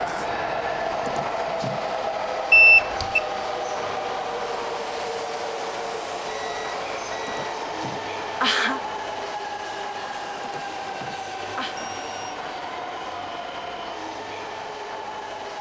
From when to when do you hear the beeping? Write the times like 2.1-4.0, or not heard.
2.5-3.2, 6.2-7.5, 11.8-12.3.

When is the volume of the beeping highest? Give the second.
3 s.